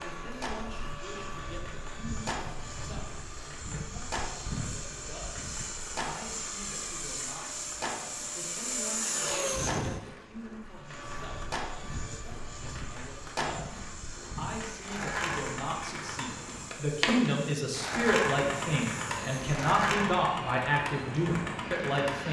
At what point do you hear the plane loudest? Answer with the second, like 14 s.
9 s.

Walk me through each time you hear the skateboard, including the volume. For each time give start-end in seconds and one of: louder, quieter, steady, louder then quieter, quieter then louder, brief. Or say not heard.
0.0-22.2 louder.